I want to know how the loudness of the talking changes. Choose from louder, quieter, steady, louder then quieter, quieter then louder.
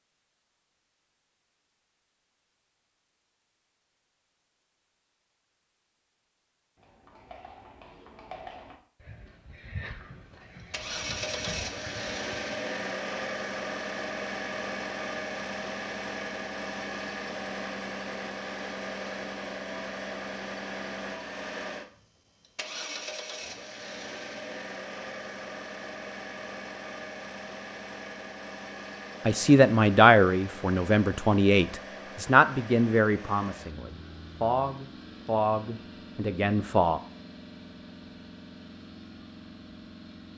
quieter.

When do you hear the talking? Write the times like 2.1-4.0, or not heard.
29.2-37.0.